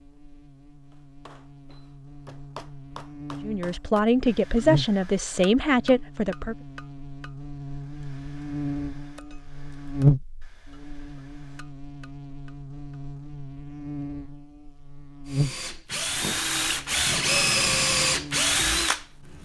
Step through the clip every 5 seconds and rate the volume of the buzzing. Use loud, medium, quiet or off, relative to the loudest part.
medium, medium, loud, medium.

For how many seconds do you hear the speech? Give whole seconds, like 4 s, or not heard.
3 s.